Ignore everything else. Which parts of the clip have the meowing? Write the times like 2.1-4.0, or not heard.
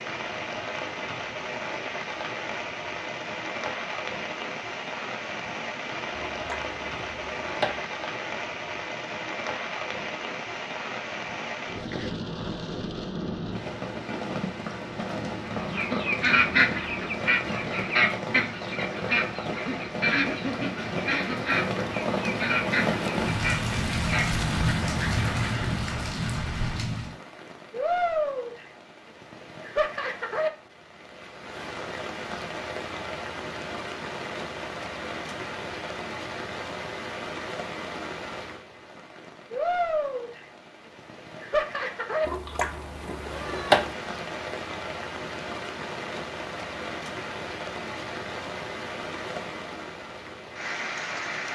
6.2-7.8, 42.2-44.0.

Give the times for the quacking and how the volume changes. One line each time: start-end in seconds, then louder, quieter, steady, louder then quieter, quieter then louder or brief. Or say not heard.
15.5-25.7 quieter.